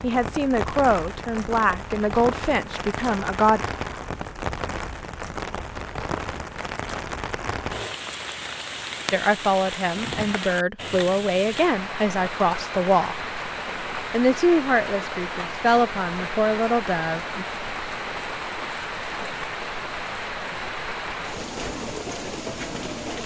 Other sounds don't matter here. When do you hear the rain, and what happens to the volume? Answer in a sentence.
You can hear the rain from 0.0 to 23.2 s, at a steady volume.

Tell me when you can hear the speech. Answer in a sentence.
You can hear the speech from 0.0 to 3.6 s, from 9.1 to 13.2 s and from 14.1 to 17.4 s.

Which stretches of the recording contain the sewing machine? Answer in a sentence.
The sewing machine can't be heard in this clip.